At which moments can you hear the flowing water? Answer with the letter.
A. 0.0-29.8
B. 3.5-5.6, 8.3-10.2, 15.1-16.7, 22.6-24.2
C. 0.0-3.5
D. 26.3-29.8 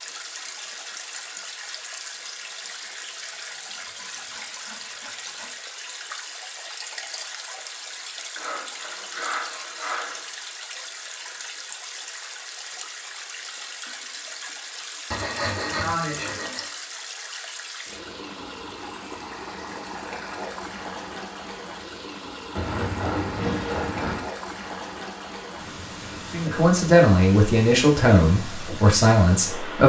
A.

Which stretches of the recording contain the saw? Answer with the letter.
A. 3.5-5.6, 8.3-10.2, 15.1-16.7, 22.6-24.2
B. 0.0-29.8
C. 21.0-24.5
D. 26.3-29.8
A.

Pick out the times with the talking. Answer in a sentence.
You can hear the talking from 26.3 to 29.8 s.